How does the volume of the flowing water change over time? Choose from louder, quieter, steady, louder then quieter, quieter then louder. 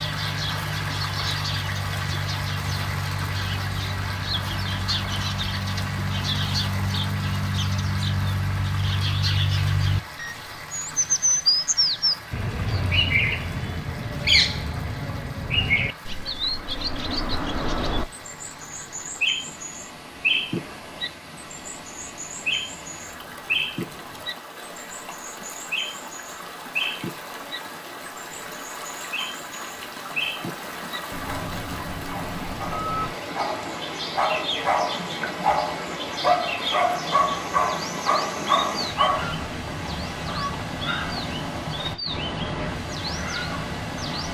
quieter then louder.